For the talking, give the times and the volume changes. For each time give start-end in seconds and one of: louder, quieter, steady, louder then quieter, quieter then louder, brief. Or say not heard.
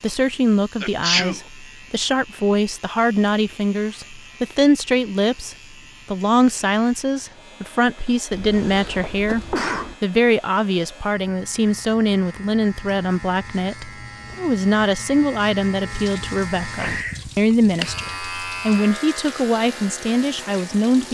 0.0-21.0 steady.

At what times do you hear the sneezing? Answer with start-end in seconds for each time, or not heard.
0.8-1.4, 8.3-9.9, 16.8-17.4.